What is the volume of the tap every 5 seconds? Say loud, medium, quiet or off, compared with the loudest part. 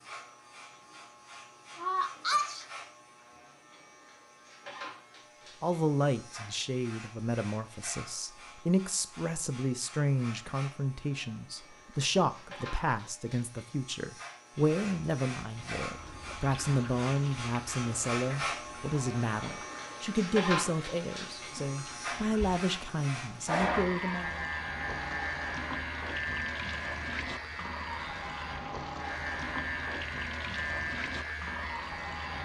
off, off, off, medium, loud, loud, loud.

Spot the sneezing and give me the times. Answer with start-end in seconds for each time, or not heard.
1.8-2.6.